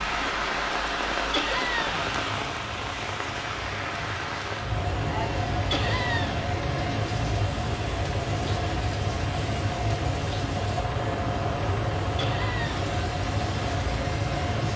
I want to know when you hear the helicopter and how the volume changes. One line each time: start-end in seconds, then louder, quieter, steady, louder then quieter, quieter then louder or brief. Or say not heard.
0.1-14.7 louder.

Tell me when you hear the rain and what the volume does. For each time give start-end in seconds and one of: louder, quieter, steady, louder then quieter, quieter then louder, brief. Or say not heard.
0.0-14.7 quieter.